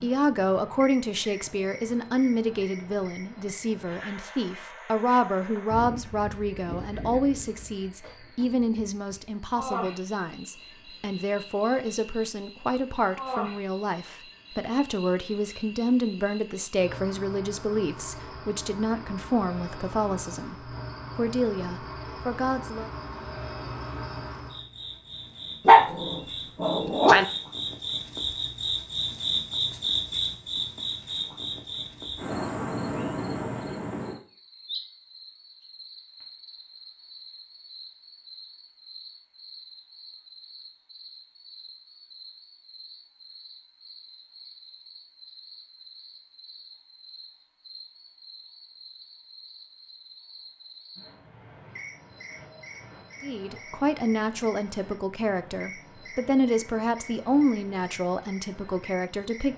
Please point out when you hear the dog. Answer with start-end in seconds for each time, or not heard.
25.6-27.2.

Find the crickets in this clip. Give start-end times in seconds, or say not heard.
0.0-59.5.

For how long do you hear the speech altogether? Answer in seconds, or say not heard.
29 s.